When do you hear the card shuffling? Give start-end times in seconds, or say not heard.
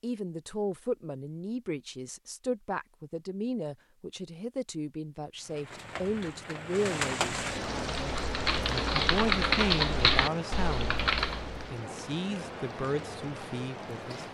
not heard.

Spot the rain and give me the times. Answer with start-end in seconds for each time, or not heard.
5.3-14.2.